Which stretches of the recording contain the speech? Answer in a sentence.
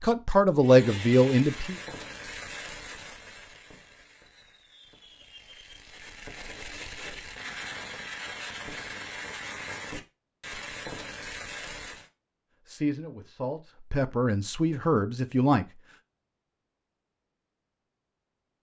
The speech can be heard from 0.0 to 1.8 s and from 12.7 to 15.7 s.